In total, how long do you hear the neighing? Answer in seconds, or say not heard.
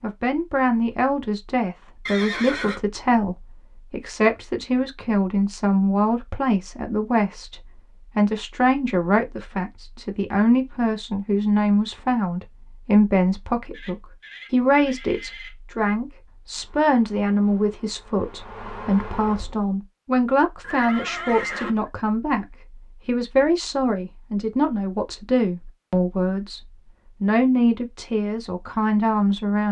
4 s.